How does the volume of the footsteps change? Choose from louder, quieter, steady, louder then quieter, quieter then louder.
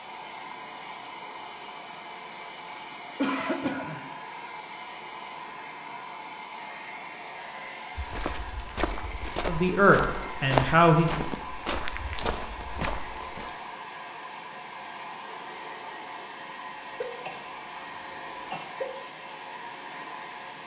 louder then quieter.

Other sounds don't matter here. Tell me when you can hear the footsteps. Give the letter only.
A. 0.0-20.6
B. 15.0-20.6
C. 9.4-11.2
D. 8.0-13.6
D.